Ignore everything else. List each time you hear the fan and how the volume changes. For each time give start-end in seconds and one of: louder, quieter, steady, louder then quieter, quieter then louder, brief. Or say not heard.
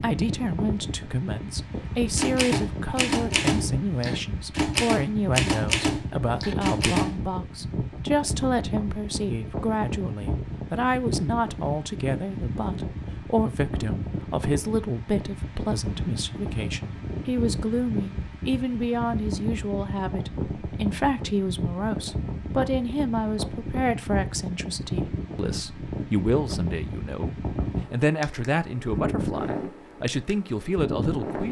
0.0-31.4 steady.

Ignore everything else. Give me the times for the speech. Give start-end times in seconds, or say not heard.
0.0-31.4.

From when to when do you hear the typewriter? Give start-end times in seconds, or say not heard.
2.1-7.2.